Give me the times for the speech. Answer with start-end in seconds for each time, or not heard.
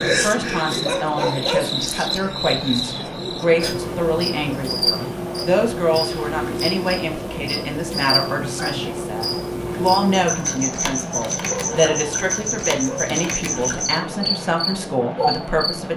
0.1-15.9.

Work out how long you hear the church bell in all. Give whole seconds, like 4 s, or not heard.
not heard.